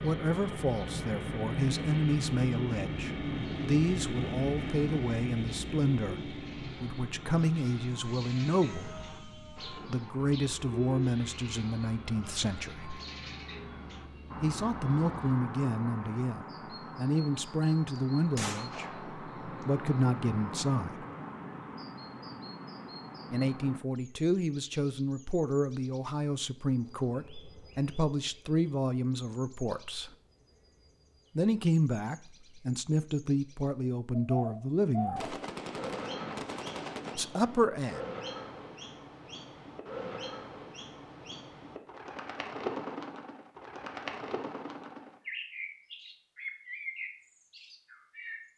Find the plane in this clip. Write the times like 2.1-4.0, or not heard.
0.0-15.3.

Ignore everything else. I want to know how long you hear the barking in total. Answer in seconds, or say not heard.
not heard.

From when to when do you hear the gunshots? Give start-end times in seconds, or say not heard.
17.9-19.2, 35.1-37.1.